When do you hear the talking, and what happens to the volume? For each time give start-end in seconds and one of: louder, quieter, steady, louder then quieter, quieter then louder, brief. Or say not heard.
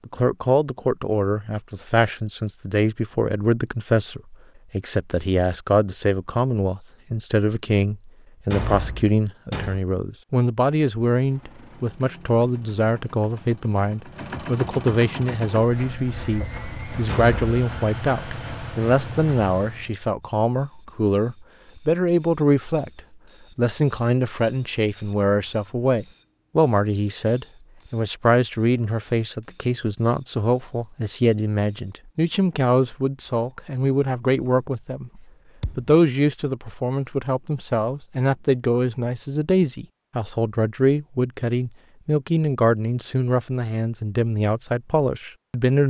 0.1-45.8 steady.